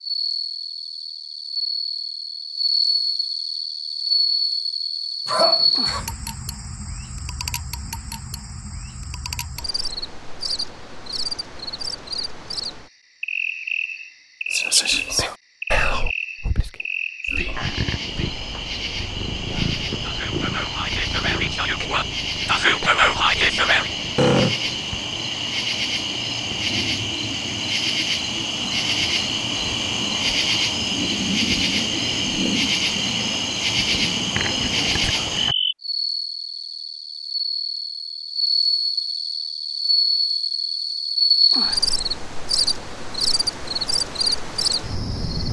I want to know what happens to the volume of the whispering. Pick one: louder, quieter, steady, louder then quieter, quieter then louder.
quieter then louder.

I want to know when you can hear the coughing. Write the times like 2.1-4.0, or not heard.
5.2-6.0, 24.1-24.9.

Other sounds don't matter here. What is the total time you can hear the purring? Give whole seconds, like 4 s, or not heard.
6 s.